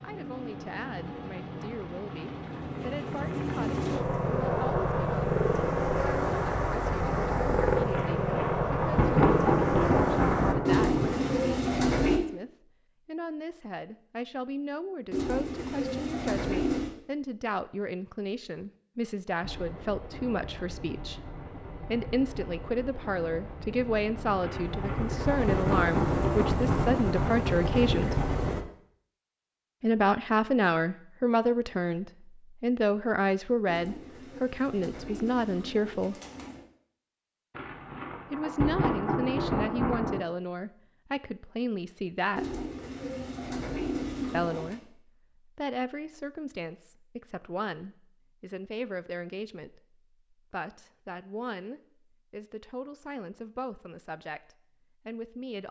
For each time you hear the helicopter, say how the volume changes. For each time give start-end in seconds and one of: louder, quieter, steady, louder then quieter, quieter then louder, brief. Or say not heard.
0.0-10.6 louder
19.4-28.6 louder.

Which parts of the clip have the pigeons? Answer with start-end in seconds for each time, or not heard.
10.7-12.2, 15.1-16.9, 33.6-36.6, 42.4-44.8.